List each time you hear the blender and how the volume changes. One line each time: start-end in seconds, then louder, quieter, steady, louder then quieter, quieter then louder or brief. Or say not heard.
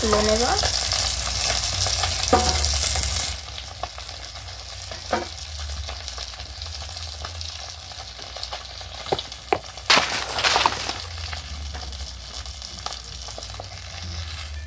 not heard.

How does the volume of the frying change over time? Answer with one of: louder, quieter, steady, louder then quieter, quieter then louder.
quieter.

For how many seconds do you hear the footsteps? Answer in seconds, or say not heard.
2 s.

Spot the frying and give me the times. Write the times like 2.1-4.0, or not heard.
0.0-14.6.